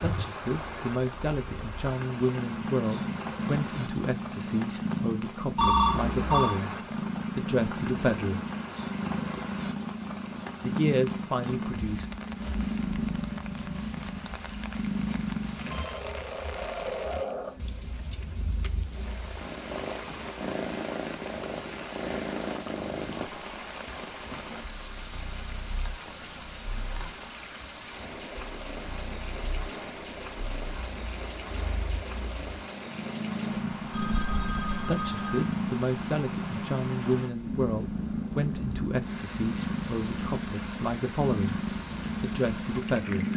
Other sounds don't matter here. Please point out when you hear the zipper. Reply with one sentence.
The zipper can't be heard in this clip.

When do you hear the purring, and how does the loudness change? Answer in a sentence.
The purring can be heard from 0.0 to 43.3 s, getting quieter then louder.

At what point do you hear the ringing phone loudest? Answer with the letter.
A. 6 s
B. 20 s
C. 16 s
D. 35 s
A.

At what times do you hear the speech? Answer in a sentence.
You can hear the speech from 0.0 to 6.8 s, from 7.3 to 8.5 s, from 10.6 to 12.1 s, from 34.9 to 41.6 s and from 42.2 to 43.3 s.